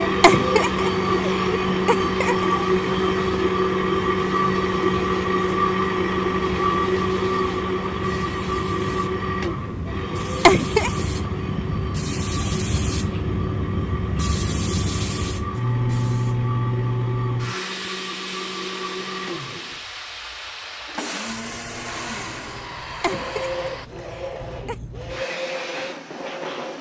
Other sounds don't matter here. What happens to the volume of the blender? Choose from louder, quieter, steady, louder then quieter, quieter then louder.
quieter.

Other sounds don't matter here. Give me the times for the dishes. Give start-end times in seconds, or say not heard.
not heard.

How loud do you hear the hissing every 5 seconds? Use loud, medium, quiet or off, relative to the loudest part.
medium, medium, loud, loud, medium, medium.